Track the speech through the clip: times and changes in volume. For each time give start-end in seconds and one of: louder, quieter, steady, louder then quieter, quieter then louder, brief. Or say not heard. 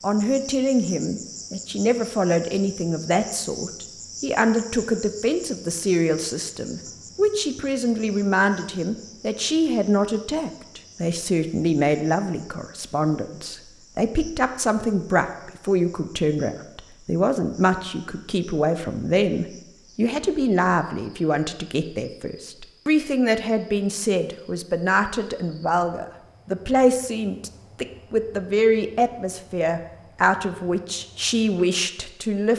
0.0-32.5 steady.